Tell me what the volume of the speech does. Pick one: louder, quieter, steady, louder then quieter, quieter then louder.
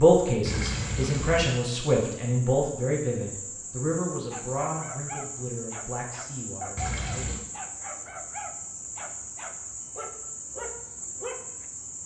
quieter.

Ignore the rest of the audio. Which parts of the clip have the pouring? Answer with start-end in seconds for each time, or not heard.
0.5-1.6, 6.8-7.4.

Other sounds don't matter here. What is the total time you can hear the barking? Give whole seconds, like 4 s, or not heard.
7 s.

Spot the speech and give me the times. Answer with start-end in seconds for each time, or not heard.
0.0-7.3.